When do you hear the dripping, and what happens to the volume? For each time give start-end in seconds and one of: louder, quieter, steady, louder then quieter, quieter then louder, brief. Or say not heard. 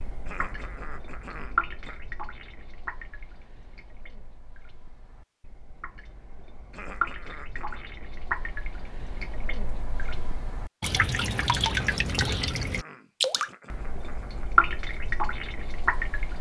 0.0-16.3 quieter then louder.